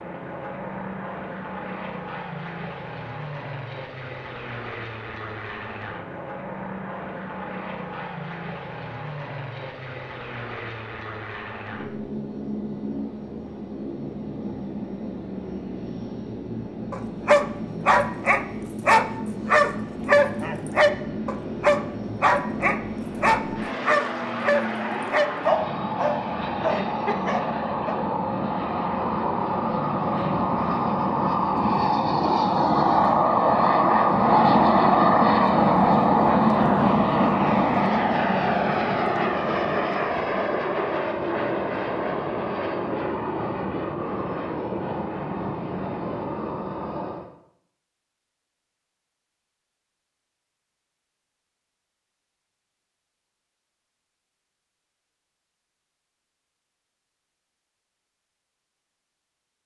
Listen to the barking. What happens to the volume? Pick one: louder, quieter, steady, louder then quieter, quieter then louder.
quieter.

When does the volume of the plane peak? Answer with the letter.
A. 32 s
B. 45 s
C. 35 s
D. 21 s
C.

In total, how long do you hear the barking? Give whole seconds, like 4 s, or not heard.
11 s.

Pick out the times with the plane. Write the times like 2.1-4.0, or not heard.
0.0-47.3.